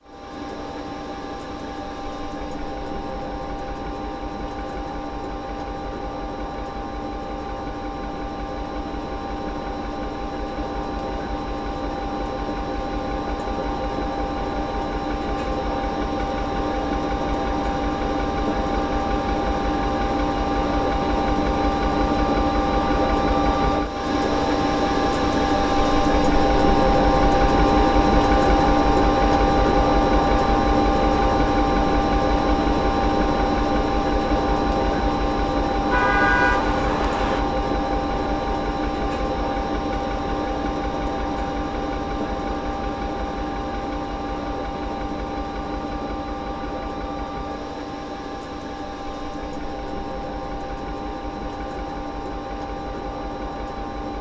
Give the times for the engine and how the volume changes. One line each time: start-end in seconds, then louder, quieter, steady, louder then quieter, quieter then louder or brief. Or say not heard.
0.0-54.1 louder then quieter.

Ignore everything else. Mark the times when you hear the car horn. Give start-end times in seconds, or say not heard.
35.9-37.4.